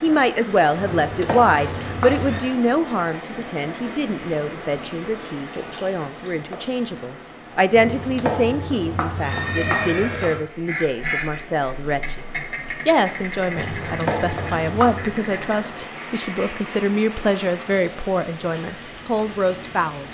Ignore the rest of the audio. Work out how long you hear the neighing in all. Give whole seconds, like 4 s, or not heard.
6 s.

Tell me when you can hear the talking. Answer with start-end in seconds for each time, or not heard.
0.0-12.2, 12.8-20.0.